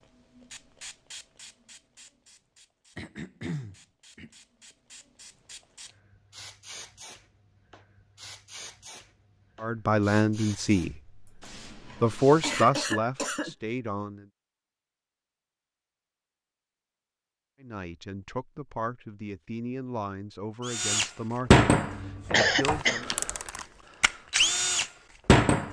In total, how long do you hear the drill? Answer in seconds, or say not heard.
5 s.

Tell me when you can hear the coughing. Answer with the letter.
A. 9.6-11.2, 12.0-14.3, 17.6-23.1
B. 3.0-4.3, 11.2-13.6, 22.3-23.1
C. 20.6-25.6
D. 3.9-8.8
B.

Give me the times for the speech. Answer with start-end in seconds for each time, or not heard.
9.6-11.2, 12.0-14.3, 17.6-23.1.